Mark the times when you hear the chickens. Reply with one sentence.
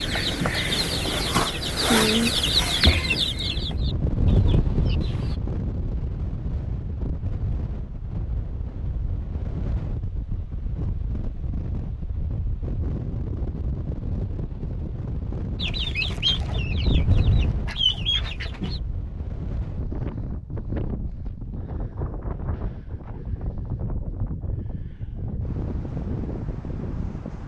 The chickens can be heard from 0.0 to 5.3 s and from 15.6 to 18.8 s.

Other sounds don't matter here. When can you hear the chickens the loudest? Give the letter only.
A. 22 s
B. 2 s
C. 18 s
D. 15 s
B.